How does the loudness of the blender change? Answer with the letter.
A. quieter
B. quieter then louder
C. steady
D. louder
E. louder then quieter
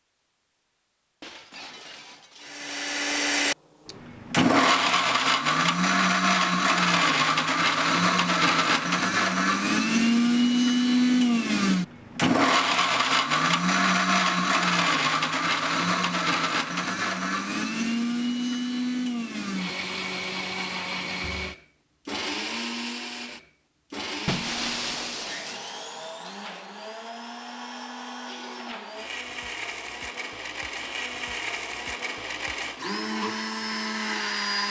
A.